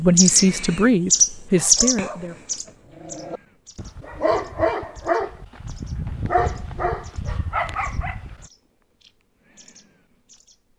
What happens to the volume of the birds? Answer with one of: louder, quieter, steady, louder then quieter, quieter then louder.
quieter.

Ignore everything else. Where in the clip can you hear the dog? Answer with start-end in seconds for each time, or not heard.
1.6-8.4.